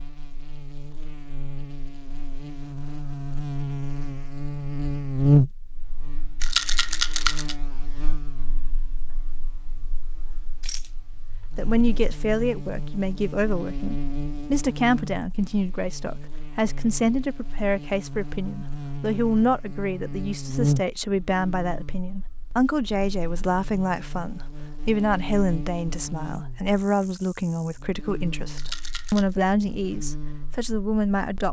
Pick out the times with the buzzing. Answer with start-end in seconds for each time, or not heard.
0.0-31.4.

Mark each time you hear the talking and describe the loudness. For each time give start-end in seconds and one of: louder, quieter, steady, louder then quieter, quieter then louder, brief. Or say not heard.
11.6-31.4 steady.